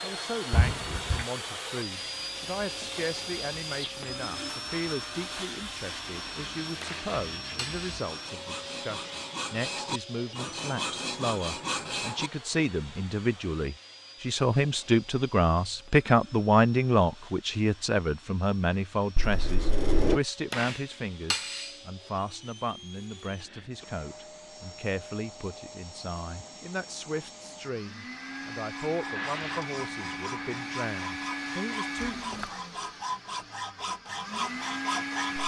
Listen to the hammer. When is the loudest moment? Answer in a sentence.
The loudest moment of the hammer is at 21 seconds.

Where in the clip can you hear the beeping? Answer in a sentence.
You can't hear the beeping here.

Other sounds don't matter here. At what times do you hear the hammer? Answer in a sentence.
The hammer can be heard from 6.8 to 7.9 s and from 20.5 to 21.8 s.